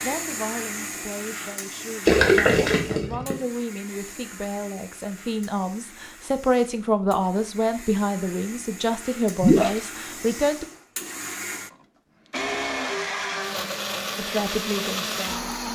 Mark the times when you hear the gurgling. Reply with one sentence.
You can hear the gurgling from 2.0 to 3.4 s and from 9.4 to 9.8 s.